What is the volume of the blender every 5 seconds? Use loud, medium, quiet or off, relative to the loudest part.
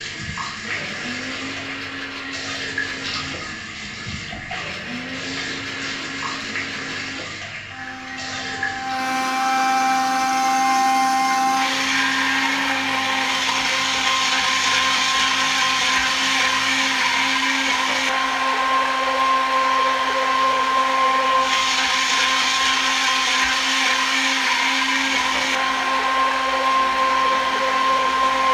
quiet, medium, loud, loud, loud, loud.